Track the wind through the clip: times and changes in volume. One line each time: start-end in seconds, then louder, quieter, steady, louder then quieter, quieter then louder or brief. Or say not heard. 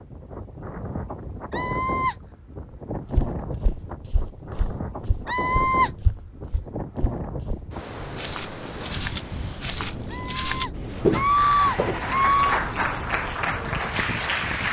0.0-14.6 steady.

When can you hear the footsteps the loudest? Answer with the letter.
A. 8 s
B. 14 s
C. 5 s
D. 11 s
D.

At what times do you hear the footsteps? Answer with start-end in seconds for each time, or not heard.
3.1-12.0.